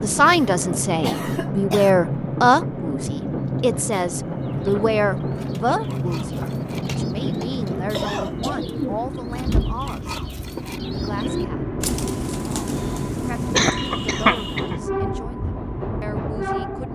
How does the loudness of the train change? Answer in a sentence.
The loudness of the train stays about the same.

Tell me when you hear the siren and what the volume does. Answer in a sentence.
The siren can't be heard in this clip.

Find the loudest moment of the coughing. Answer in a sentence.
The loudest moment of the coughing is at 14 seconds.